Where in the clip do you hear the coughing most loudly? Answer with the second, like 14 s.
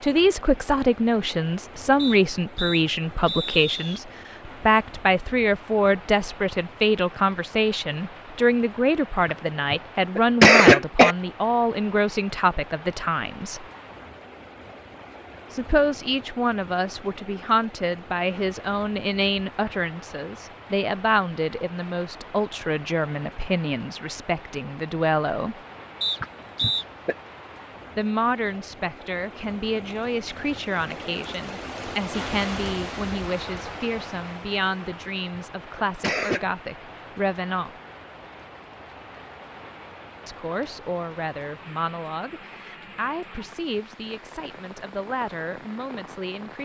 11 s.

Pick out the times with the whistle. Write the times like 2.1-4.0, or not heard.
1.9-4.0, 26.0-26.9.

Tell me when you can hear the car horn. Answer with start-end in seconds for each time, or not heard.
not heard.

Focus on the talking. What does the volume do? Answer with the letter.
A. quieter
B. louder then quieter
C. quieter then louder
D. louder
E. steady
A.